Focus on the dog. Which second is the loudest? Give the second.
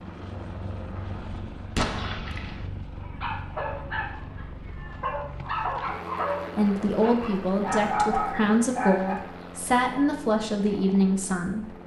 8 s.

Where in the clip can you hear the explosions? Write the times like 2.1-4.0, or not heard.
1.8-2.6.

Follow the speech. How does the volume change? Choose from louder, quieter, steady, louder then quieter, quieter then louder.
steady.